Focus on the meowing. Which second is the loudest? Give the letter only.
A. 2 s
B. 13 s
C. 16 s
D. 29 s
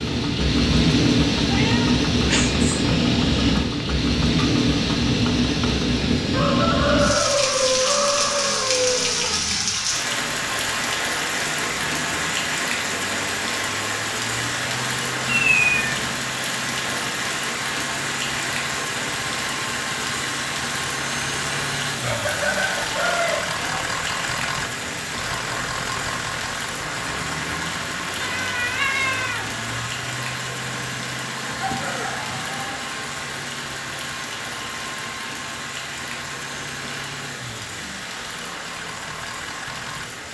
C.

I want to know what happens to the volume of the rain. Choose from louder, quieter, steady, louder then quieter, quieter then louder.
quieter.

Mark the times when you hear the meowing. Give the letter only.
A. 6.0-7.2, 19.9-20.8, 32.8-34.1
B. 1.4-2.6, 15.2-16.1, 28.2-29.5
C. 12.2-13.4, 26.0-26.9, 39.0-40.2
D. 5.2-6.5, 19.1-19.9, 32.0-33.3
B.